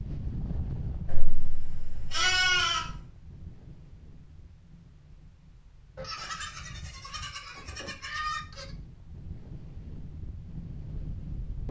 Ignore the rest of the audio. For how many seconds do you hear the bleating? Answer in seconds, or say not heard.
5 s.